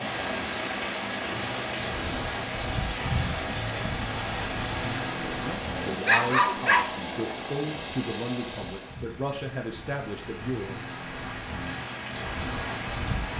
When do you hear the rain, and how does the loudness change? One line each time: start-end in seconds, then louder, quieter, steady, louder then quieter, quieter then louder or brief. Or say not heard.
0.0-13.3 quieter then louder.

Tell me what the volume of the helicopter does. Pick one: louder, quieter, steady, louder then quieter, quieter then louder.
steady.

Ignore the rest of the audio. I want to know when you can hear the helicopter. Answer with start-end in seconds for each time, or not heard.
0.0-9.1.